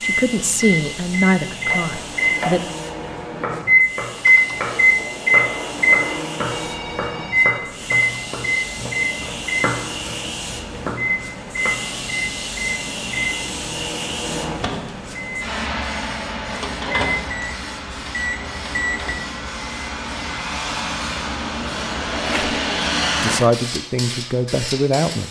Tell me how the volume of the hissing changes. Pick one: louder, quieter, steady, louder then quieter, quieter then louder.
louder.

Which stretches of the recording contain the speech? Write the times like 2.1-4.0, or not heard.
0.0-2.6, 23.2-25.2.